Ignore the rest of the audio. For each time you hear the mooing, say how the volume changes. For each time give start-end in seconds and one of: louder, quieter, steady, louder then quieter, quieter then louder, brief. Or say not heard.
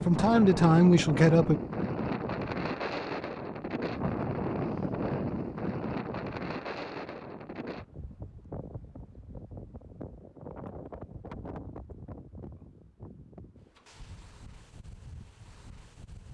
not heard.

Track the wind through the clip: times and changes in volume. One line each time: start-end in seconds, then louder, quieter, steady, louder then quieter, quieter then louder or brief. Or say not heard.
0.0-16.3 quieter.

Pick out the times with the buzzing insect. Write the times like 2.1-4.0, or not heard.
not heard.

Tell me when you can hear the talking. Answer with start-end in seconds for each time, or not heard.
0.1-1.6.